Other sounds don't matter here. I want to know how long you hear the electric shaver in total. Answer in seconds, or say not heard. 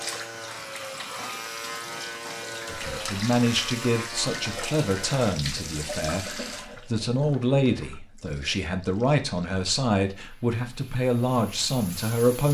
5 s.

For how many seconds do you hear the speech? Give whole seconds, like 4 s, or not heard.
10 s.